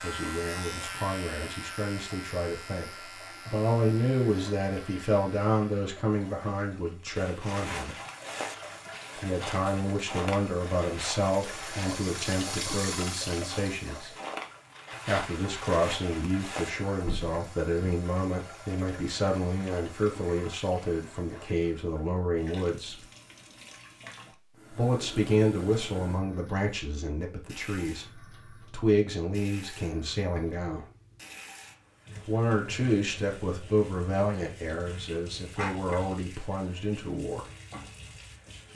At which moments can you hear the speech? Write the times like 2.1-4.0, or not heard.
0.0-8.0, 9.2-14.1, 15.1-23.0, 24.7-30.9, 32.2-37.4.